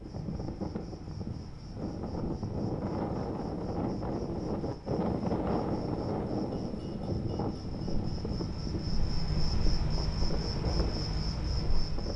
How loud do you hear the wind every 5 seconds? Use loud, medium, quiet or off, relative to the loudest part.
loud, loud, medium.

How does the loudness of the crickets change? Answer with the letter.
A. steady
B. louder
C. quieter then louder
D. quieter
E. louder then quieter
B.